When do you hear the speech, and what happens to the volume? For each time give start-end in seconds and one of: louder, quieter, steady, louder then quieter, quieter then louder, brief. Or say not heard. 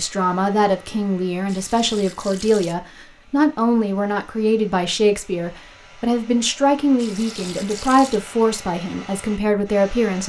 0.0-10.2 steady.